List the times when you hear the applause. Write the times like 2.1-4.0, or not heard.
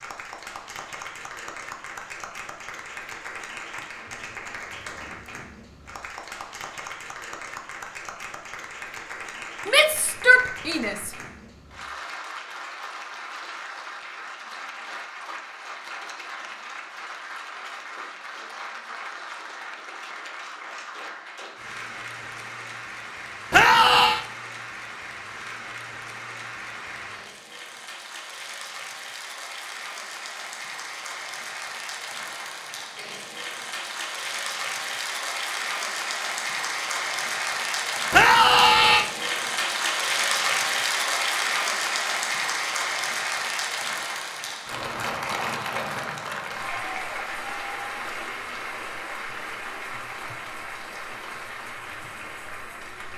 0.0-53.1.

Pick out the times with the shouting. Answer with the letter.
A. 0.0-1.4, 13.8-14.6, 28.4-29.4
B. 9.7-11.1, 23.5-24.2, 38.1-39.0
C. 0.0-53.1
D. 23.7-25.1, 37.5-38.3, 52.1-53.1
B.